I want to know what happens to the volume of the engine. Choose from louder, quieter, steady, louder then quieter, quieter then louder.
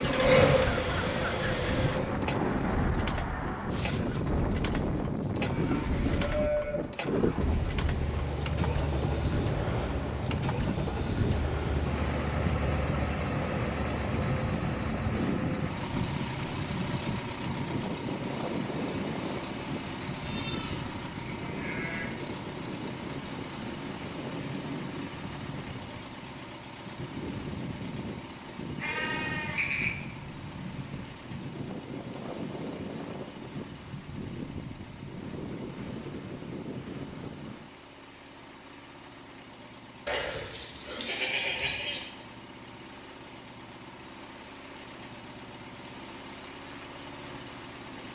quieter.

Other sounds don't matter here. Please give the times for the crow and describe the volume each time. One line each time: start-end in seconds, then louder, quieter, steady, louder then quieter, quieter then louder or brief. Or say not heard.
not heard.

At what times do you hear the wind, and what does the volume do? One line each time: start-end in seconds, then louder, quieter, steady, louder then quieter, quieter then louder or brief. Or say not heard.
0.0-37.7 quieter.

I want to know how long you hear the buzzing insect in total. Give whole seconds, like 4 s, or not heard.
2 s.